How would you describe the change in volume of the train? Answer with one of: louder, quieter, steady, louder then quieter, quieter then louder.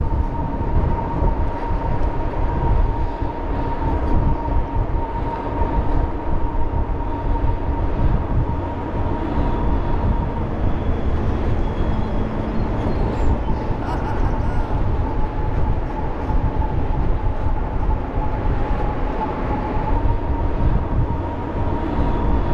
steady.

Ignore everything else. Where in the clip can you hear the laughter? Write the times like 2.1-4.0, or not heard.
13.8-14.8.